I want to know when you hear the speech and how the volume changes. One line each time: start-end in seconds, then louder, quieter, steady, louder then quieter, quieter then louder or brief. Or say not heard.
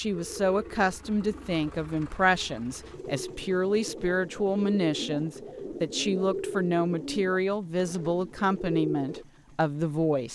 0.0-10.3 steady.